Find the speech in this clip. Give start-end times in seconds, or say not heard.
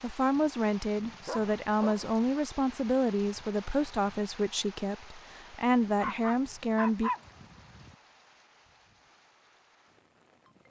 0.0-7.1.